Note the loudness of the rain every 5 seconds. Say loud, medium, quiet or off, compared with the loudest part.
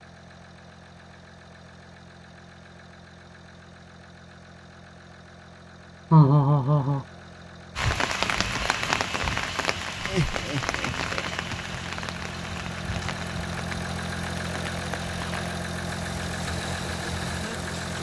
off, loud, medium, quiet.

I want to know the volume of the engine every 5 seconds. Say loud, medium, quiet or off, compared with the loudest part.
quiet, quiet, loud, loud.